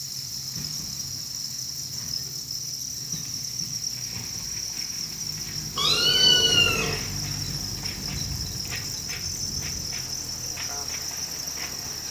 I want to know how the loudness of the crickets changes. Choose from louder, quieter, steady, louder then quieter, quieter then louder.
steady.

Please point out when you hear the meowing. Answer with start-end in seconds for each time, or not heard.
5.8-7.0.